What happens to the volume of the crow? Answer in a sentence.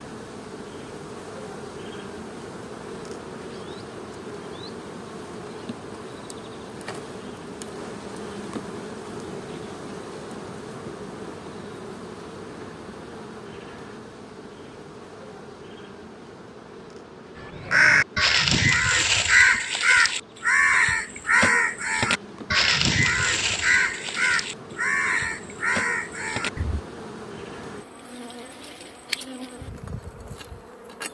The volume of the crow goes down.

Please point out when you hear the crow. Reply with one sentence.
You can hear the crow from 17.4 to 26.8 s.